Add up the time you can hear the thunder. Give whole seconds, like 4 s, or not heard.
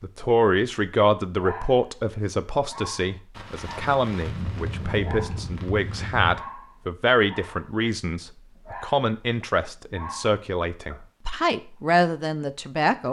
3 s.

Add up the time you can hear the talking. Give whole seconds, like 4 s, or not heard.
13 s.